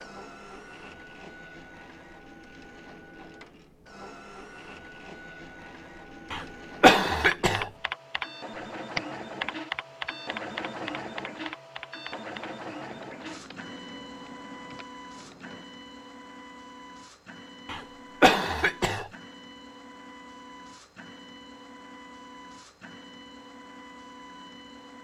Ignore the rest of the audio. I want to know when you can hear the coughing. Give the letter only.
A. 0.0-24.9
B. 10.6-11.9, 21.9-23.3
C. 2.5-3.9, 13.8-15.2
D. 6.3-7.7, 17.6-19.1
D.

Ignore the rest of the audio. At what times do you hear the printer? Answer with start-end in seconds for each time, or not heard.
0.0-24.9.